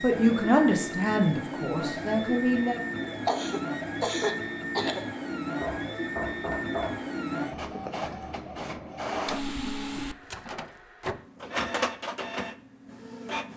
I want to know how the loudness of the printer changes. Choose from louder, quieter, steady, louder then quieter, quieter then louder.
steady.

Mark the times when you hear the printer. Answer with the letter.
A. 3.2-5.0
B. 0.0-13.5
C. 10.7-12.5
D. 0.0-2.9
B.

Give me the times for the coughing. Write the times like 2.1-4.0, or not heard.
3.2-5.0.